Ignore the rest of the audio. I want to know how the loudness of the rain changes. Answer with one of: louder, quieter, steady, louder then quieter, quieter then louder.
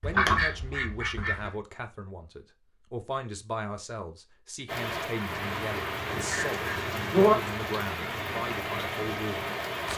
steady.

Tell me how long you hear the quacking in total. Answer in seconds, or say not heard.
3 s.